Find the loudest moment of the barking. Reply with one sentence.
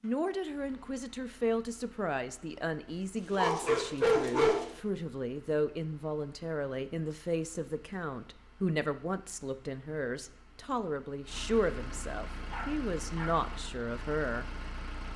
The volume of the barking peaks at 4 seconds.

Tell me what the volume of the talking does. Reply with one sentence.
The loudness of the talking stays about the same.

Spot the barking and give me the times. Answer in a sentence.
The barking can be heard from 3.3 to 4.8 s and from 12.5 to 13.3 s.